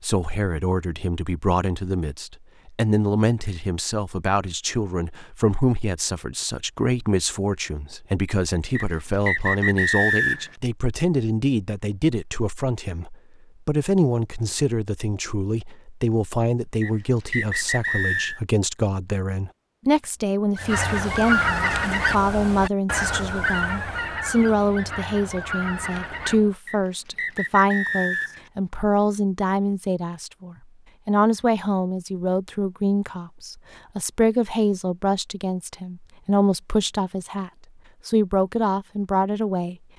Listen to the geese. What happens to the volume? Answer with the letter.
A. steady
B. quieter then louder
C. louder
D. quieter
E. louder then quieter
D.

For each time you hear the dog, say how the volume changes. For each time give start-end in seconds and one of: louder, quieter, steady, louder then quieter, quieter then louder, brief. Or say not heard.
not heard.